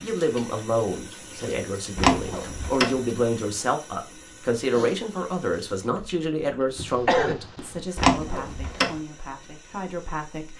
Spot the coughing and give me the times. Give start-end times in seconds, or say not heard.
6.8-7.8.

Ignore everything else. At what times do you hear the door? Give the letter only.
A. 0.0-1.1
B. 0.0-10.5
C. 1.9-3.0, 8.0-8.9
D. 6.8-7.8
C.